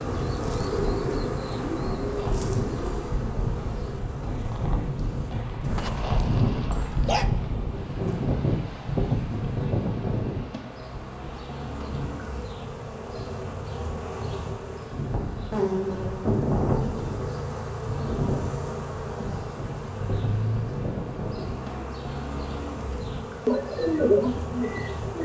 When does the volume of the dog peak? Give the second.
7 s.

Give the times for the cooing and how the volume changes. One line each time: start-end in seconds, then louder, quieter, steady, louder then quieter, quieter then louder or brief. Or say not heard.
0.0-4.4 quieter
23.4-25.2 brief.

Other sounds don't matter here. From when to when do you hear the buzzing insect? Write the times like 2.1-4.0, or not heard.
0.0-25.2.